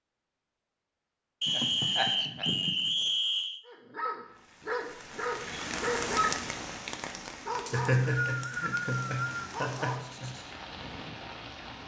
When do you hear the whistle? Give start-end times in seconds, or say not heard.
1.4-3.6, 7.7-9.4.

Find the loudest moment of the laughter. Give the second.
8 s.